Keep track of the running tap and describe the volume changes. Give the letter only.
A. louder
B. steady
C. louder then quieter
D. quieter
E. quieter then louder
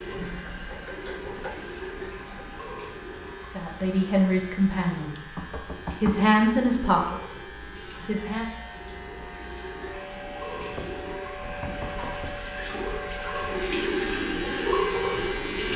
E.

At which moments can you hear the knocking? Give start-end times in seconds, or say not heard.
0.5-2.4, 5.3-6.3, 10.6-12.3.